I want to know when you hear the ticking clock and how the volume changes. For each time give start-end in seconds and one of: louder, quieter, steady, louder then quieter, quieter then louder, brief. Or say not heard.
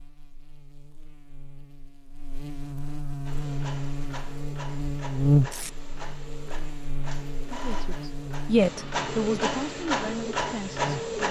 not heard.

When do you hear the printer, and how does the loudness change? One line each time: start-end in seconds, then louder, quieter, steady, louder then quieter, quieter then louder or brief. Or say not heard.
3.2-11.2 louder.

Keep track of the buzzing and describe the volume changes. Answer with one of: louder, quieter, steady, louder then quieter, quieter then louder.
louder then quieter.